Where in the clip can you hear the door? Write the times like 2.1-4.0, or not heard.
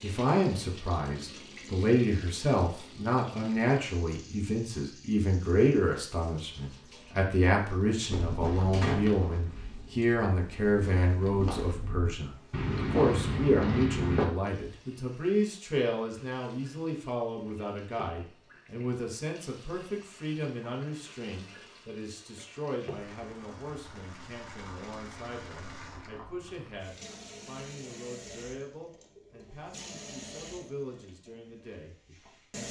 8.7-10.1.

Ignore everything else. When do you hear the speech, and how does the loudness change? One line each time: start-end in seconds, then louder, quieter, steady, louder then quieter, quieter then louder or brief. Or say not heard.
0.0-32.6 quieter.